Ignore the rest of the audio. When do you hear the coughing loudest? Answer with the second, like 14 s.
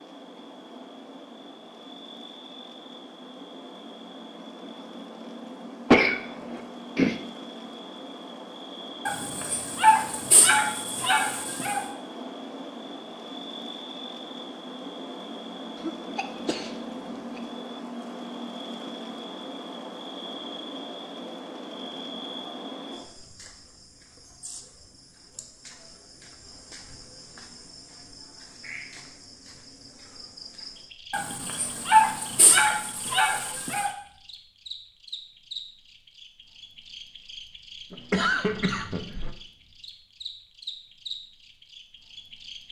6 s.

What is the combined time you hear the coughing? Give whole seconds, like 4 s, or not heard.
4 s.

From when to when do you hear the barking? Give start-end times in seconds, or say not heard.
9.1-11.8, 31.1-33.9.